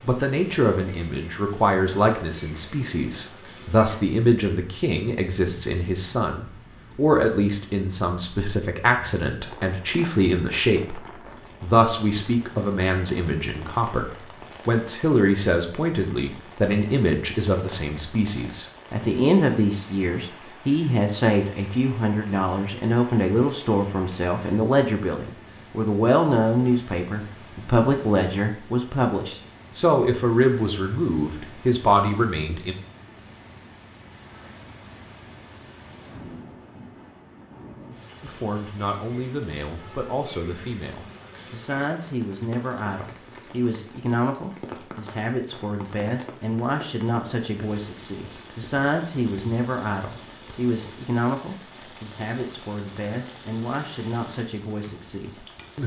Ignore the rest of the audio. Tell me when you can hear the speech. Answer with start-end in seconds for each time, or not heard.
0.0-32.8, 38.2-55.8.